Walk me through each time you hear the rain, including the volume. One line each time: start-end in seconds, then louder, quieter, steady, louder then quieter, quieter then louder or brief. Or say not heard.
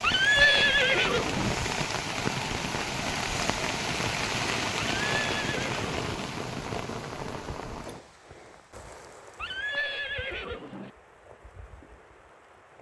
0.0-12.7 quieter.